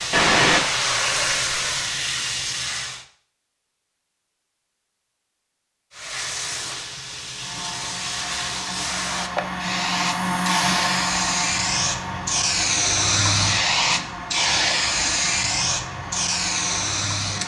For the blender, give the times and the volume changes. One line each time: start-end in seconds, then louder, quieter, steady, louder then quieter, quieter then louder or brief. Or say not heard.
7.3-17.4 louder then quieter.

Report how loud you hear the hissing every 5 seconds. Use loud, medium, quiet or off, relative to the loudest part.
loud, medium, loud, loud.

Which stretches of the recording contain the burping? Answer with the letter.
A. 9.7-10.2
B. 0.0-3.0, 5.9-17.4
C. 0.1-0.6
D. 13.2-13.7
C.